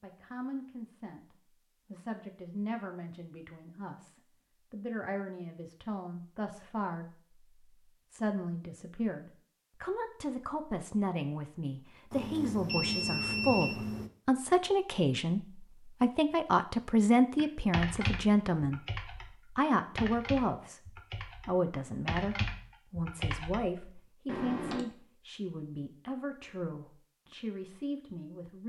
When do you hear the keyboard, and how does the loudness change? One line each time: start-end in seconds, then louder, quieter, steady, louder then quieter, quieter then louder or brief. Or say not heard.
17.4-24.9 quieter then louder.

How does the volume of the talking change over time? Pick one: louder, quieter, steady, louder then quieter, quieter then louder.
louder then quieter.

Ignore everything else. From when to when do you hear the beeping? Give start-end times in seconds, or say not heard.
12.1-14.1.